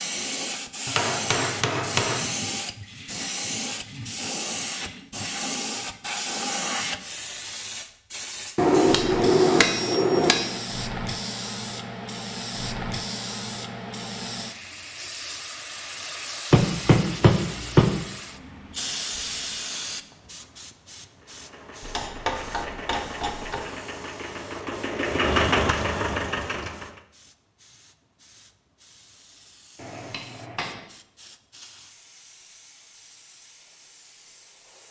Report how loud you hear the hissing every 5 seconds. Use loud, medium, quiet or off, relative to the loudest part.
loud, loud, loud, loud, quiet, quiet, quiet.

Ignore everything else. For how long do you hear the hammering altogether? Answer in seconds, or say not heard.
8 s.